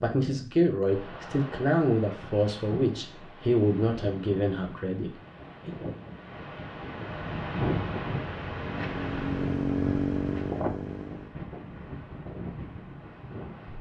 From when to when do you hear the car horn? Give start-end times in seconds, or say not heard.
not heard.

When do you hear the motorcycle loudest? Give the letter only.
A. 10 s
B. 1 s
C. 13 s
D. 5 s
A.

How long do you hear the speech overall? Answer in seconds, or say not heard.
6 s.